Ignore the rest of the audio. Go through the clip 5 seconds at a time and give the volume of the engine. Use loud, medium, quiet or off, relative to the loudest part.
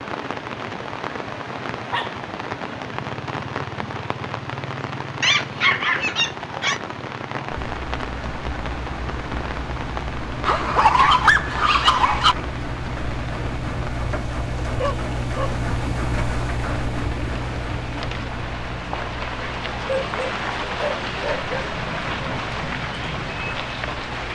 off, medium, loud, loud, medium.